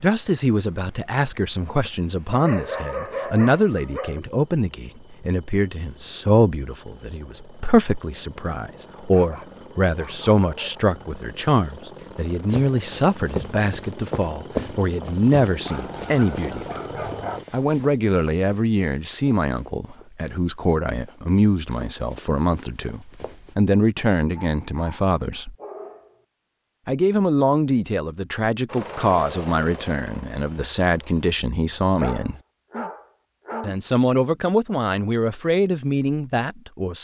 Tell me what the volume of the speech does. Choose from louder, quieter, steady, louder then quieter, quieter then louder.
steady.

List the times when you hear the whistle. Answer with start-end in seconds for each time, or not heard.
not heard.